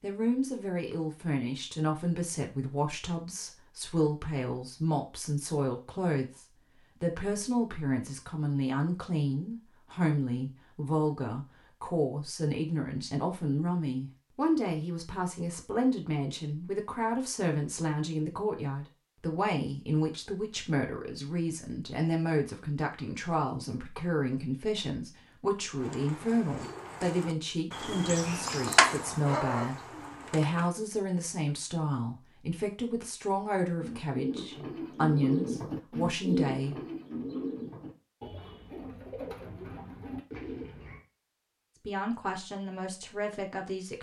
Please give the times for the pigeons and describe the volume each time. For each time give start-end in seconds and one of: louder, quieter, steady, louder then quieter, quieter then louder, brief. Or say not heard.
25.8-30.7 louder then quieter
33.8-41.0 quieter.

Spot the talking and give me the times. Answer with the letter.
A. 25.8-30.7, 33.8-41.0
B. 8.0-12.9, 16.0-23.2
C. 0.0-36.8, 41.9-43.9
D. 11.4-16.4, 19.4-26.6
C.